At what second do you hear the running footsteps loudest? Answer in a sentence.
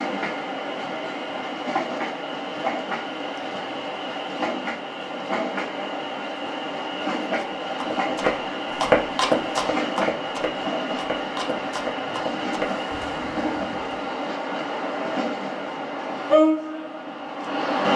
The volume of the running footsteps peaks at 9 seconds.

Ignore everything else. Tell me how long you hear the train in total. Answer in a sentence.
The train can be heard for 18 seconds in total.